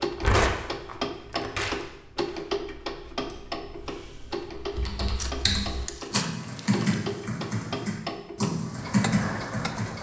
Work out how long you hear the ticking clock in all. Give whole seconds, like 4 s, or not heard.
10 s.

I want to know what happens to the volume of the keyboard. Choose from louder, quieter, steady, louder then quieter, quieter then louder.
louder.